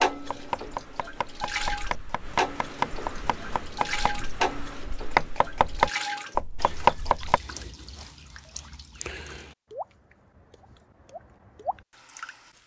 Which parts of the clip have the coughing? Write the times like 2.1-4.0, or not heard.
not heard.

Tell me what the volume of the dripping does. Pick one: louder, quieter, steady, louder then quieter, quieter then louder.
quieter.